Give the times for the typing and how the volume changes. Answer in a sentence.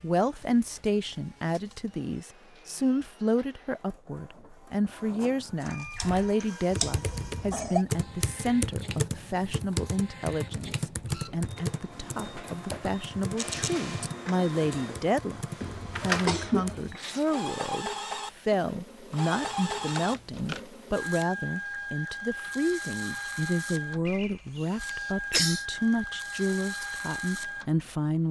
You can hear the typing from 5.8 to 16.8 s, getting quieter.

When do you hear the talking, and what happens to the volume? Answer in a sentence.
The talking can be heard from 0.0 to 28.2 s, at a steady volume.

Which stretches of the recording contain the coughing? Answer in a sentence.
The coughing can be heard from 6.9 to 7.8 s, from 15.6 to 16.9 s and from 24.1 to 25.6 s.